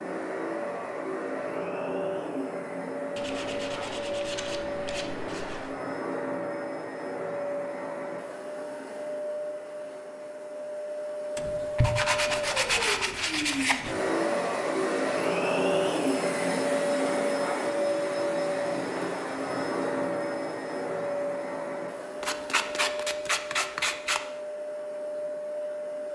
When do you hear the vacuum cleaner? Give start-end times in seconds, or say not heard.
0.0-26.1.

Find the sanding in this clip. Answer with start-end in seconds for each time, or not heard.
3.1-5.7, 11.3-14.0, 22.2-24.2.